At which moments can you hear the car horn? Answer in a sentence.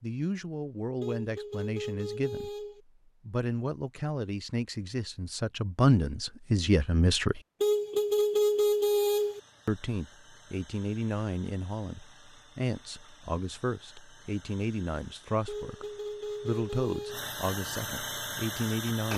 You can hear the car horn from 1.0 to 2.8 s, from 7.6 to 9.4 s and from 15.4 to 17.2 s.